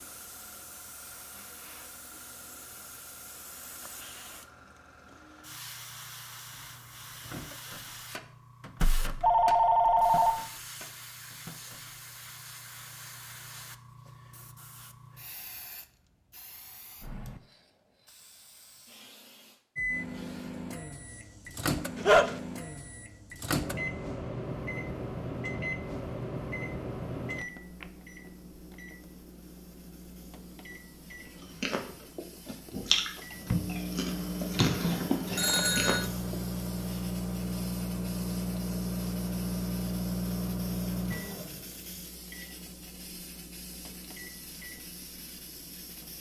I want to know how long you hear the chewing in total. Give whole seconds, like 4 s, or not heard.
5 s.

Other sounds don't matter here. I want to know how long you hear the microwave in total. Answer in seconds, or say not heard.
32 s.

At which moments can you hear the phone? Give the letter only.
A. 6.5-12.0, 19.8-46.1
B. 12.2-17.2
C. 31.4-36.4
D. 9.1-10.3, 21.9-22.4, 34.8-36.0
D.